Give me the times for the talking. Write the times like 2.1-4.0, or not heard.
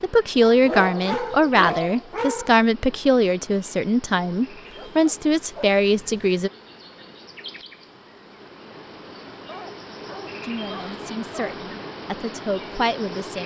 0.0-6.5, 10.4-13.4.